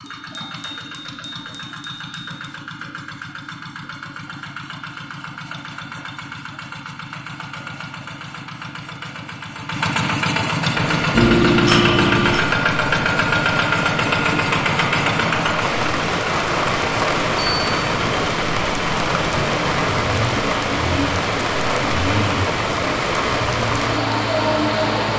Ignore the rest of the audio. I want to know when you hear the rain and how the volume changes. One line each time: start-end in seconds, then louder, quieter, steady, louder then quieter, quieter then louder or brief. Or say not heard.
10.7-25.1 louder.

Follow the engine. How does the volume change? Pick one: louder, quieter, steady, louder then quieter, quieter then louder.
louder then quieter.